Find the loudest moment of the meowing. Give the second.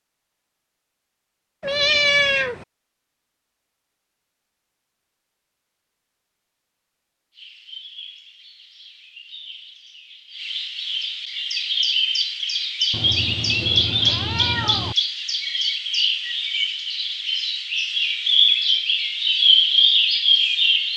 2 s.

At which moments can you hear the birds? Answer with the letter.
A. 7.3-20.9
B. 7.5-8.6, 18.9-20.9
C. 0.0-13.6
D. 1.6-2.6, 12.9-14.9
A.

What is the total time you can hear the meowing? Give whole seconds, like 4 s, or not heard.
3 s.